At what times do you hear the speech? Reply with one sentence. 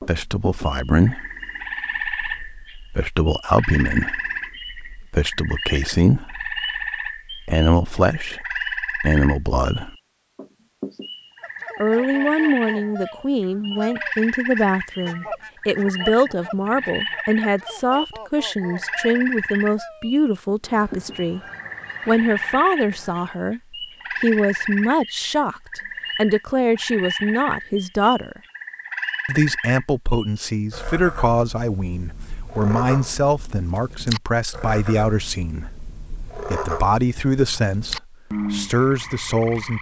You can hear the speech from 0.0 to 9.9 s, from 11.8 to 21.4 s, from 22.1 to 23.6 s, from 24.2 to 28.4 s and from 29.2 to 39.7 s.